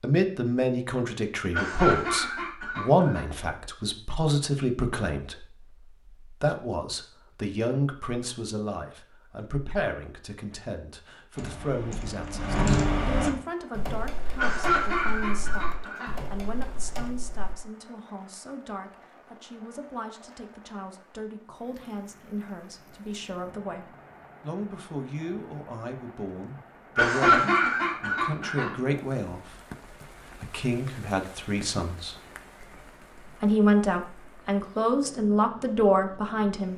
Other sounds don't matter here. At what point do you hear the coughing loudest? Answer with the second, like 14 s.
27 s.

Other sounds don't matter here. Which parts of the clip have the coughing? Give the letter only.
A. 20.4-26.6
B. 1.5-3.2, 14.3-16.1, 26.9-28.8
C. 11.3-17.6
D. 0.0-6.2
B.